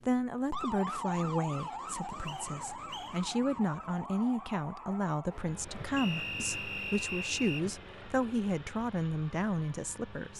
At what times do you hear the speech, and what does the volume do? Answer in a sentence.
The speech can be heard from 0.1 to 10.3 s, at a steady volume.